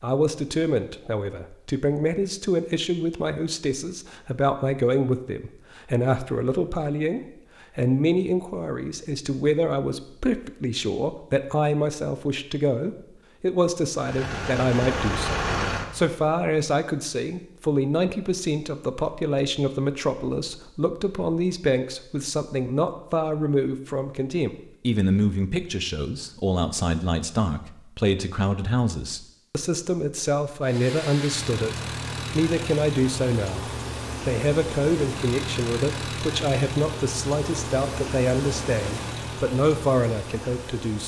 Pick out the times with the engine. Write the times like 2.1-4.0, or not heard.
13.9-16.4, 30.6-41.0.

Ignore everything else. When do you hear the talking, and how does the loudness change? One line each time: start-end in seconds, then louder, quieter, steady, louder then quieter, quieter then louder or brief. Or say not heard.
0.0-41.0 steady.